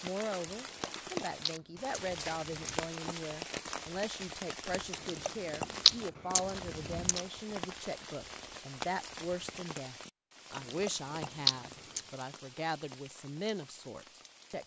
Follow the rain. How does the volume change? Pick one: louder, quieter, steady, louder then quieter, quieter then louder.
quieter.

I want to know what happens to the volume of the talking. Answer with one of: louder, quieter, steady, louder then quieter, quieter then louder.
steady.